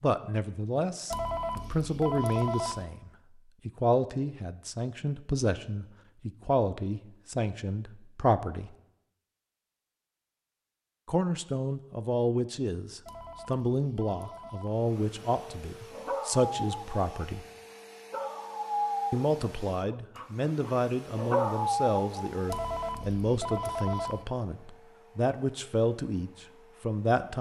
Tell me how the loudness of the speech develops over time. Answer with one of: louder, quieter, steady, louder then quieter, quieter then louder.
steady.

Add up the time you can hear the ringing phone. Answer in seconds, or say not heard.
5 s.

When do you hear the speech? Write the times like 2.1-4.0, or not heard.
0.0-8.7, 11.1-17.4, 19.1-27.3.